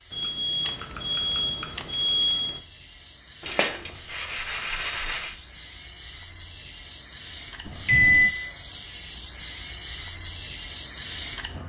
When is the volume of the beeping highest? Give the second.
8 s.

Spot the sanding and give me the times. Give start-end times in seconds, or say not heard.
3.4-5.3.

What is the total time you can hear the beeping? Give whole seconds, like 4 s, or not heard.
3 s.